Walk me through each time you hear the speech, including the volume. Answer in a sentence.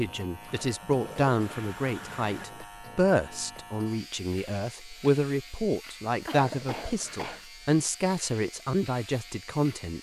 You can hear the speech from 0.0 to 9.9 s, at a steady volume.